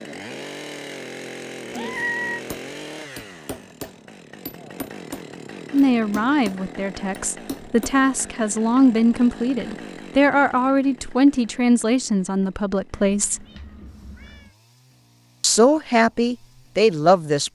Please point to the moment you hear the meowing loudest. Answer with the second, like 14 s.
2 s.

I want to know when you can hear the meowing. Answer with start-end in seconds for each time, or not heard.
1.7-2.4, 12.9-14.6.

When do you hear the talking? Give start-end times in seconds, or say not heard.
5.7-13.4, 15.4-17.4.